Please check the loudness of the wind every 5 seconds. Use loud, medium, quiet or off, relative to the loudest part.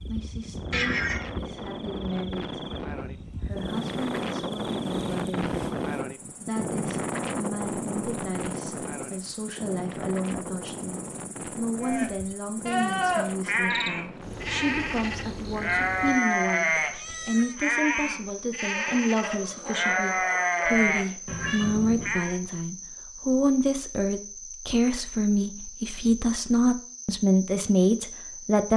loud, loud, medium, off, off, off.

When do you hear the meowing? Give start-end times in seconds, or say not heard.
0.7-1.3, 16.8-17.6, 21.2-22.2.